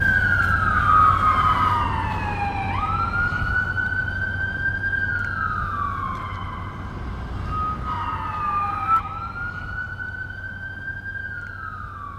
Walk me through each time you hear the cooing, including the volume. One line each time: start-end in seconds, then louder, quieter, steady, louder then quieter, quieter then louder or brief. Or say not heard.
not heard.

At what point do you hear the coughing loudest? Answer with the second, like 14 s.
1 s.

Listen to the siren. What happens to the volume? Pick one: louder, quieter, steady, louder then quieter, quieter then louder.
quieter.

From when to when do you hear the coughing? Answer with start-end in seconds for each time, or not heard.
0.7-1.8, 7.5-9.0.